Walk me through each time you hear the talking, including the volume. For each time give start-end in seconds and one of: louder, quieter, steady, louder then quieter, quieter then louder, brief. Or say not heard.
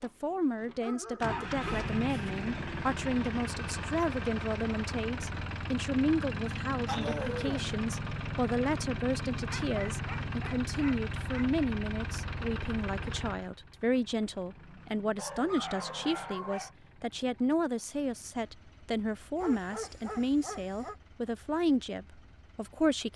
0.0-23.1 steady.